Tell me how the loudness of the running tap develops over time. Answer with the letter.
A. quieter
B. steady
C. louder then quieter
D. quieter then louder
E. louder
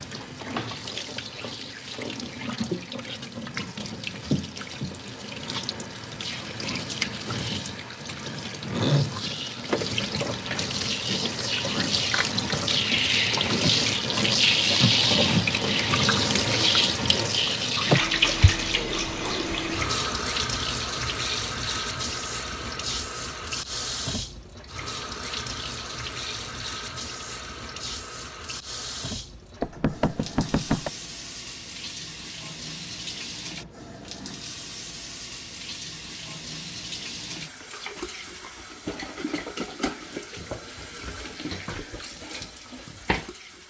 C.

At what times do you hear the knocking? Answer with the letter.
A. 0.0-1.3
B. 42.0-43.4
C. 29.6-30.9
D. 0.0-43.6
C.